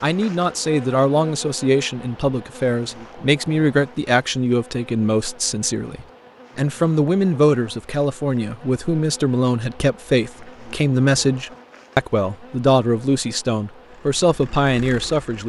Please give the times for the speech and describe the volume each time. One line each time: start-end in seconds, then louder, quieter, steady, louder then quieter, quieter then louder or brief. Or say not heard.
0.0-15.4 steady.